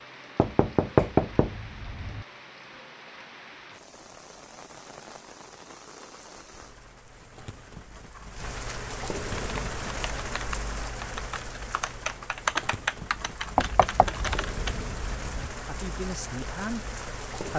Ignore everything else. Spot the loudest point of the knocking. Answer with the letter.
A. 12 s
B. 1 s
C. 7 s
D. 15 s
B.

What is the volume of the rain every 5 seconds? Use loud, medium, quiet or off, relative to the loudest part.
medium, loud, loud, loud.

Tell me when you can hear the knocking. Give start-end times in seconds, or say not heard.
0.3-2.2, 13.6-15.5.